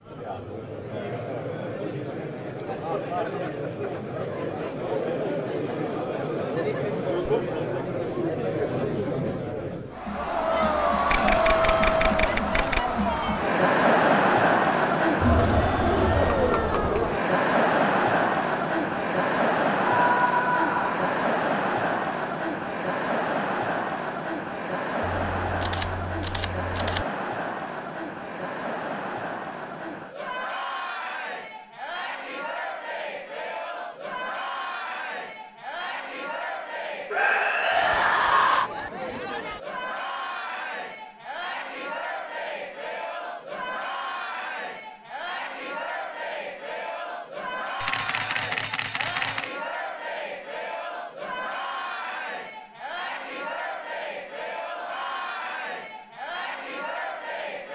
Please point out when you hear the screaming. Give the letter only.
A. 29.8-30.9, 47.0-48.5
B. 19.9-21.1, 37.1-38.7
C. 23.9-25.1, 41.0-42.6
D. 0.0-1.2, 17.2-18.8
B.